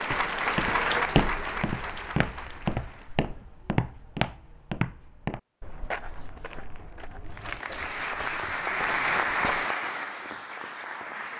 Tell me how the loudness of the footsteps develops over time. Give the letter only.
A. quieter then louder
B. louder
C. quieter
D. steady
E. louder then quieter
C.